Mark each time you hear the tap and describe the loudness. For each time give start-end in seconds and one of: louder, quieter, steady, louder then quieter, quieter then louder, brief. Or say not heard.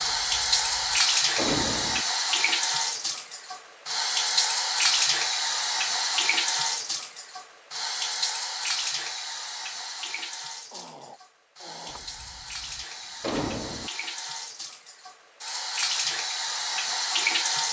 0.0-17.6 quieter then louder.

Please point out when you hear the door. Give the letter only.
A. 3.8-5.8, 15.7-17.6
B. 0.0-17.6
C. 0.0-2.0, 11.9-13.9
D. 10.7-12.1
C.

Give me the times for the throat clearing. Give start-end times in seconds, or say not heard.
10.7-12.1.